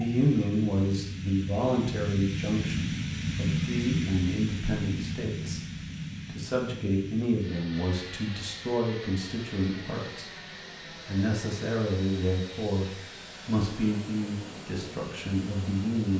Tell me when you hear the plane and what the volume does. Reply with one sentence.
You can hear the plane from 0.0 to 16.1 s, getting quieter.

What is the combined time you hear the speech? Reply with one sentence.
You can hear the speech for 15 seconds altogether.